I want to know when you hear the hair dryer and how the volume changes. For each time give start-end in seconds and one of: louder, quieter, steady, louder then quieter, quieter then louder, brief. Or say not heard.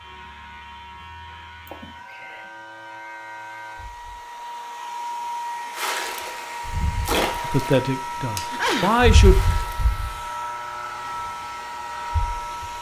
0.0-12.7 louder.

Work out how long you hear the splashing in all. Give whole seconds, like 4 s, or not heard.
4 s.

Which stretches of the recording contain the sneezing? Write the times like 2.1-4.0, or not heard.
1.6-2.5, 8.4-8.9.